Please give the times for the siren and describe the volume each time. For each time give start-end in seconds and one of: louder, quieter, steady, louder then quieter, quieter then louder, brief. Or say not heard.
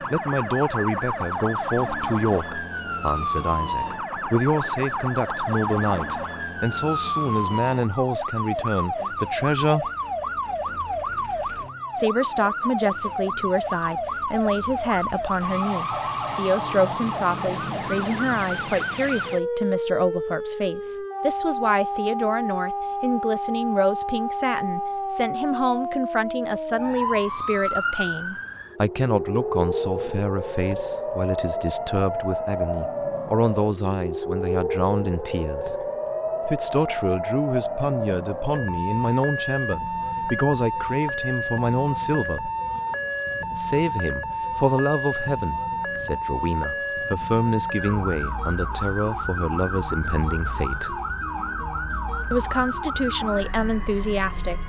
0.0-54.6 steady.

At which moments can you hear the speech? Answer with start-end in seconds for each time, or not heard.
0.1-9.9, 11.9-42.5, 43.5-51.0, 52.3-54.6.